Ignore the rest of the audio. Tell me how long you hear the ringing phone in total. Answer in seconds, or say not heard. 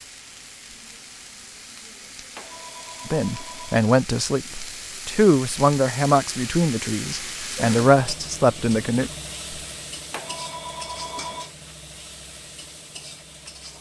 3 s.